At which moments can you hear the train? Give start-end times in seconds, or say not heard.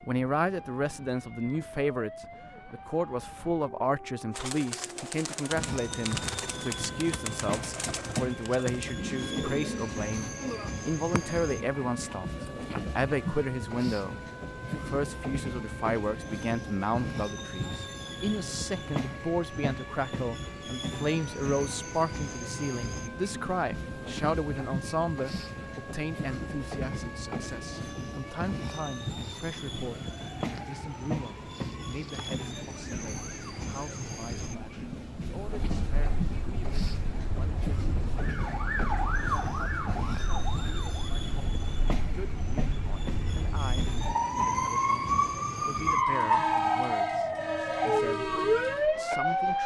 5.5-49.6.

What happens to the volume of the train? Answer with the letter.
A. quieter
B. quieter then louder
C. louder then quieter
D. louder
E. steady
E.